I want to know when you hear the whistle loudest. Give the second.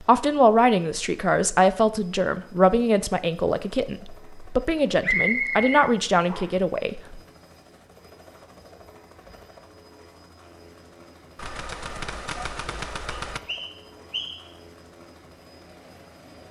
5 s.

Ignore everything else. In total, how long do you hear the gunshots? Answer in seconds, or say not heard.
2 s.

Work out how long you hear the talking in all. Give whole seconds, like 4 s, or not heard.
7 s.